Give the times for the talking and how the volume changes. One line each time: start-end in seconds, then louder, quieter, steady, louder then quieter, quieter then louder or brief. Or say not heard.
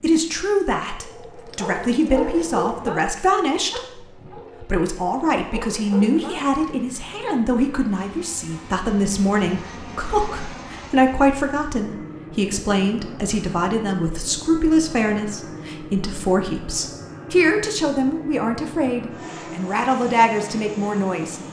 0.0-21.4 steady.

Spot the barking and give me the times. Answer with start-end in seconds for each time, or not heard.
1.0-6.5.